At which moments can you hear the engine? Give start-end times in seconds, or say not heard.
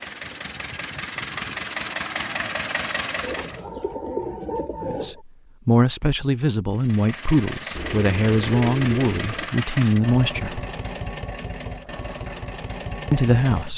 0.0-3.6, 6.7-13.7.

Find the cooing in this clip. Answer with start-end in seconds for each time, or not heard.
3.2-5.2, 7.8-9.5.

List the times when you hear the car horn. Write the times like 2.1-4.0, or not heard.
not heard.